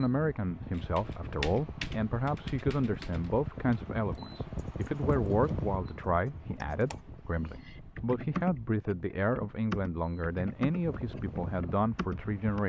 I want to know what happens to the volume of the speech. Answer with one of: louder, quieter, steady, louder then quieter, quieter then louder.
steady.